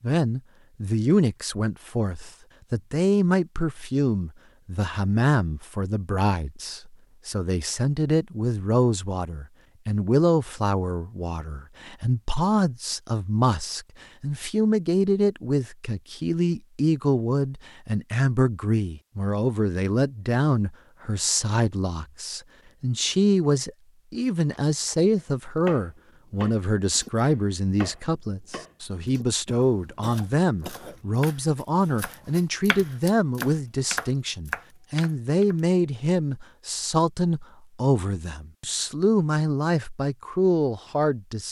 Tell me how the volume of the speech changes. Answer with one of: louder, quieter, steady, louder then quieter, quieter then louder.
steady.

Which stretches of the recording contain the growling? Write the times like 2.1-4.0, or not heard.
not heard.